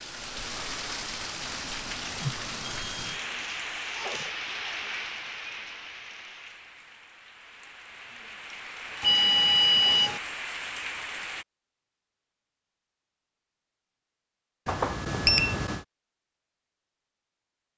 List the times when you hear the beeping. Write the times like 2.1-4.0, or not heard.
2.2-3.5, 9.0-10.2, 14.7-15.8.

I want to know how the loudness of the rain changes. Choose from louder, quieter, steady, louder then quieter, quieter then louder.
quieter then louder.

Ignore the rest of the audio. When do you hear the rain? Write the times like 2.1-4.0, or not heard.
0.0-11.4.